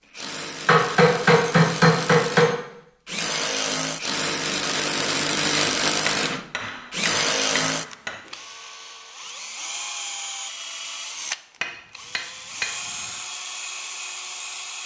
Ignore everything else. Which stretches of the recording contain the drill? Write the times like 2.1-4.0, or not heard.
0.1-14.8.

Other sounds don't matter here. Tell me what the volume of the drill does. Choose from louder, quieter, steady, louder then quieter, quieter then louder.
louder then quieter.